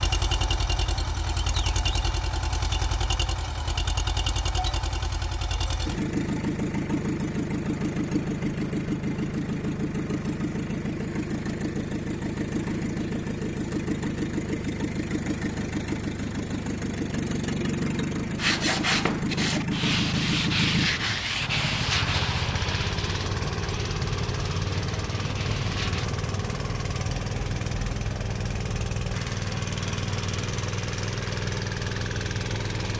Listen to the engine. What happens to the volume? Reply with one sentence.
The volume of the engine stays about the same.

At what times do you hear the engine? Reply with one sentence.
The engine can be heard from 0.0 to 32.9 s.